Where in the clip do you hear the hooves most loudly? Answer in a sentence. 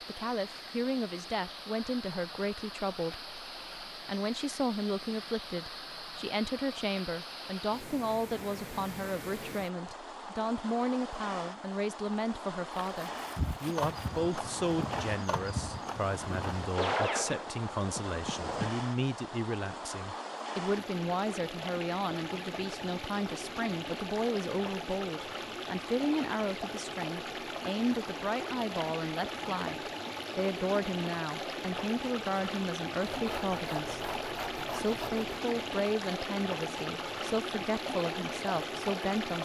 The volume of the hooves peaks at 17 seconds.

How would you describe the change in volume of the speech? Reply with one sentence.
The volume of the speech stays about the same.